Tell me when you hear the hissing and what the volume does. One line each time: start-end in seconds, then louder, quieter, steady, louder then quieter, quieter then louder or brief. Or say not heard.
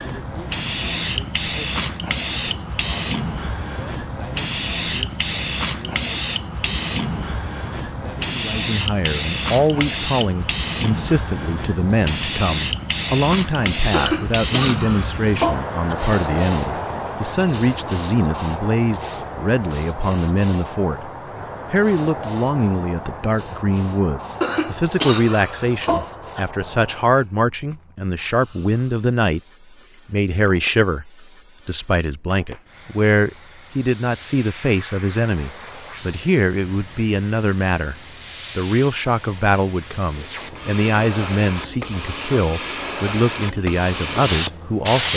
0.0-45.1 quieter then louder.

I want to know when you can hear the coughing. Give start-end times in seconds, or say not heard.
13.9-15.9, 24.4-26.4.